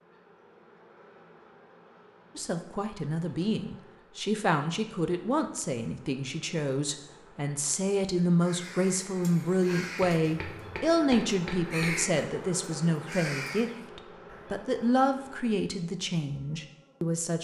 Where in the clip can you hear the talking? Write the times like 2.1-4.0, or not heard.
2.4-17.3.